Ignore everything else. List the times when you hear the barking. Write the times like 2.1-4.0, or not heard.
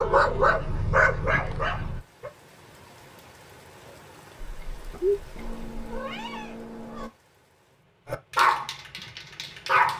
0.0-2.3, 4.4-6.0, 8.1-9.9.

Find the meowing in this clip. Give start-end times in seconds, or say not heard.
1.2-1.9, 5.3-7.1.